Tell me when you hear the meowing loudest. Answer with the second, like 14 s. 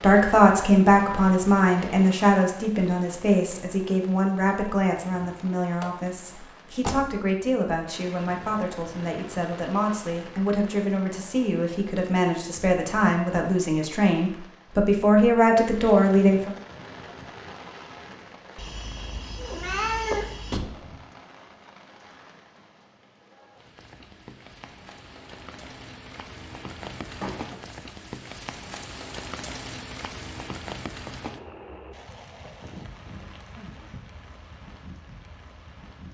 20 s.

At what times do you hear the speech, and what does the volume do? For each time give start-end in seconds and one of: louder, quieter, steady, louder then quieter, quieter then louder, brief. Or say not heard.
0.0-16.6 quieter then louder.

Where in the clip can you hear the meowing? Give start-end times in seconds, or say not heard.
18.6-20.6.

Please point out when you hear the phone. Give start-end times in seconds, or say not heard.
not heard.